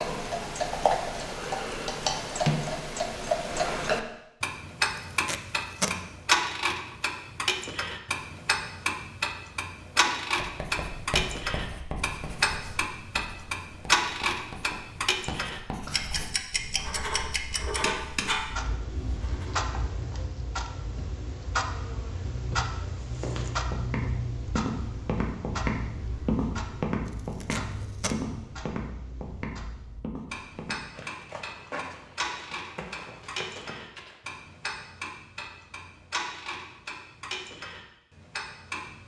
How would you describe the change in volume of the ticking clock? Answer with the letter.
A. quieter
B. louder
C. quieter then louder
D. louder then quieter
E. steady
A.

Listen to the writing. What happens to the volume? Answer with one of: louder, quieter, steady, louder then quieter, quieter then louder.
quieter then louder.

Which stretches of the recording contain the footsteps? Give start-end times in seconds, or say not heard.
22.9-34.2.